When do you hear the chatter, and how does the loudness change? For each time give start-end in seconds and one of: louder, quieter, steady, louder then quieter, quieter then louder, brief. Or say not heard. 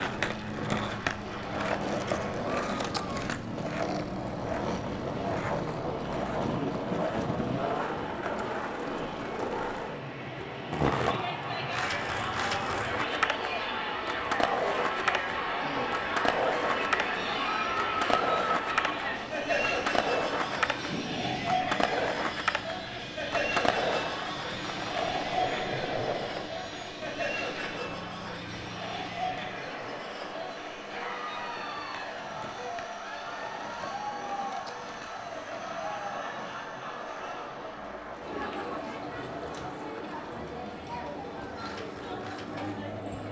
10.9-43.2 quieter.